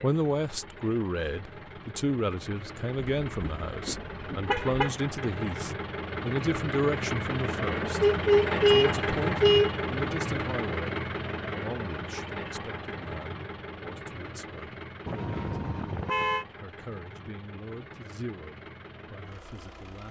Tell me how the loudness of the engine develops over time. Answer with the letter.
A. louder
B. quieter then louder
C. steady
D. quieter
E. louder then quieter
E.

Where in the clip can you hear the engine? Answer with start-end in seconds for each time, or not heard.
0.0-20.0.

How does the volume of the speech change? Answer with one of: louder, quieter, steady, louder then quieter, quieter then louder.
quieter.